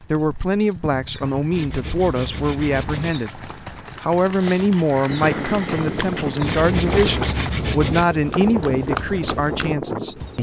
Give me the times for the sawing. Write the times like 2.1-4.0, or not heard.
1.5-3.1, 6.4-8.1.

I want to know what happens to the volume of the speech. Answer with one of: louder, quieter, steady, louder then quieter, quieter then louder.
steady.